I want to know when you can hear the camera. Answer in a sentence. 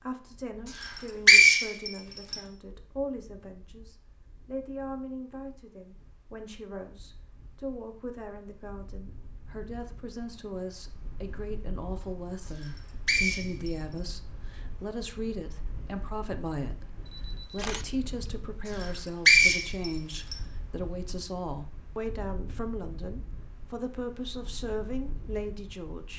You can hear the camera from 17.1 to 18.3 s.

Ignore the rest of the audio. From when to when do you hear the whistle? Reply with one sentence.
The whistle can be heard from 0.8 to 2.4 s, from 12.6 to 13.7 s and from 18.7 to 20.4 s.